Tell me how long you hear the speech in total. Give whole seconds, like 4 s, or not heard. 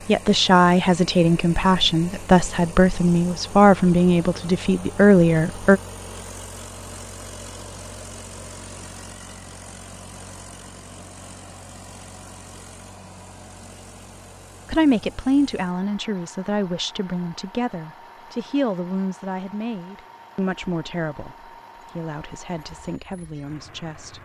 15 s.